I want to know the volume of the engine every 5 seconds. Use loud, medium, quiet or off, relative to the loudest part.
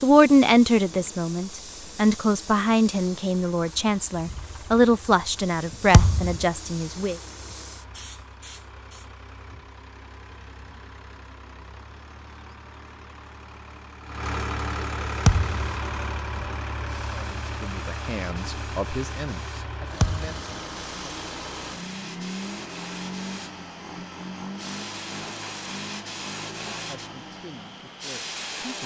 quiet, quiet, loud, loud, loud, medium.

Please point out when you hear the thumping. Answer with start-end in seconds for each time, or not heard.
5.9-6.5, 15.2-15.8, 20.0-20.5.